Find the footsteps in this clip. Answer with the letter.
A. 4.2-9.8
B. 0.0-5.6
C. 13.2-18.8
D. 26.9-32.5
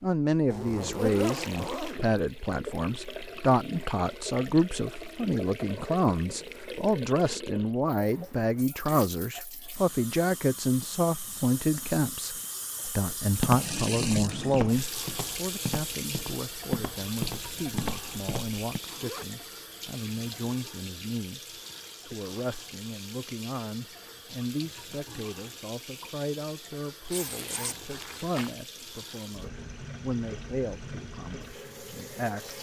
C.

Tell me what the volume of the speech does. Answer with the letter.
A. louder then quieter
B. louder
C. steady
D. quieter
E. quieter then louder
D.